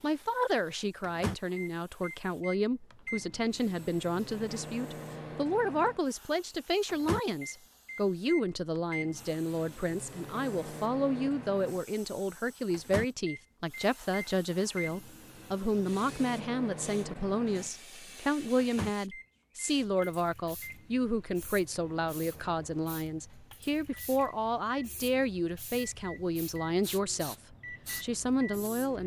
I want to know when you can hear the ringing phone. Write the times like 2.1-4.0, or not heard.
not heard.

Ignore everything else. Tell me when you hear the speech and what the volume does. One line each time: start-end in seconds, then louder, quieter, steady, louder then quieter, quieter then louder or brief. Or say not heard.
0.0-29.0 steady.